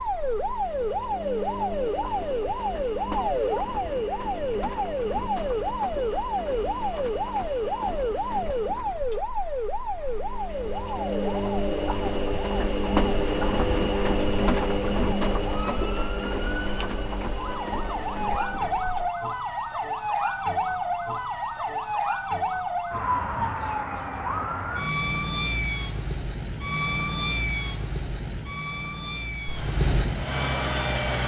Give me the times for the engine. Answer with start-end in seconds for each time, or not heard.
0.0-19.1, 29.4-31.2.